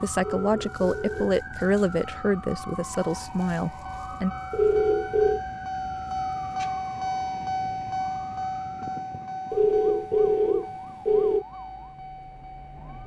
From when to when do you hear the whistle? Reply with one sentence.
You can't hear the whistle here.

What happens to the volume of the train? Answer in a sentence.
The volume of the train goes up, then down.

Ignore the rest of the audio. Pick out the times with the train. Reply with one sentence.
You can hear the train from 0.1 to 13.0 s.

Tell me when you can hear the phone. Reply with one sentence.
The phone can be heard from 0.3 to 1.4 s, from 4.5 to 5.4 s and from 9.5 to 11.4 s.